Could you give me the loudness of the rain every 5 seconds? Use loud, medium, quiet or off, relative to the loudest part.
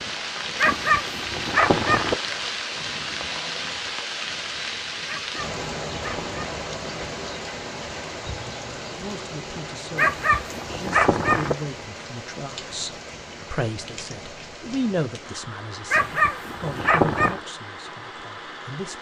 loud, loud, medium, medium.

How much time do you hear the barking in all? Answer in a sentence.
You can hear the barking for 6 seconds altogether.